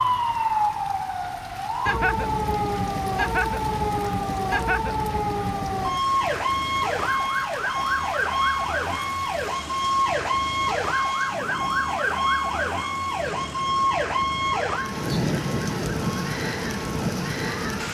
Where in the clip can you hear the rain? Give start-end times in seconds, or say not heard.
0.0-17.8.